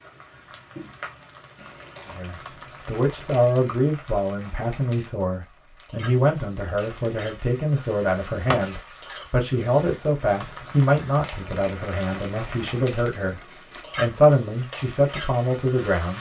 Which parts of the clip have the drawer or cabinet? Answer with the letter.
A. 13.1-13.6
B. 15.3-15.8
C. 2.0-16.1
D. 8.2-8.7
D.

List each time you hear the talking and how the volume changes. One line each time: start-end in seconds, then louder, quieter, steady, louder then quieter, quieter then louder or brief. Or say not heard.
2.0-16.1 steady.